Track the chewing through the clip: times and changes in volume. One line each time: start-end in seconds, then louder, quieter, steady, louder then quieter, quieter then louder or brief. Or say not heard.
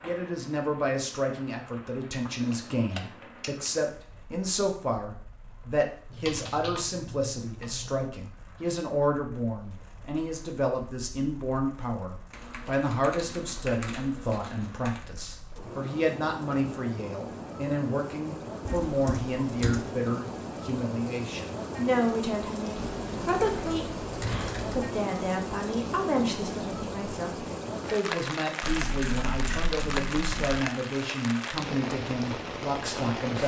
not heard.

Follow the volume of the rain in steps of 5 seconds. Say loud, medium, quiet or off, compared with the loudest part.
quiet, quiet, quiet, medium, loud, loud, loud.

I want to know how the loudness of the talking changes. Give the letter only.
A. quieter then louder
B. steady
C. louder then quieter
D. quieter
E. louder
B.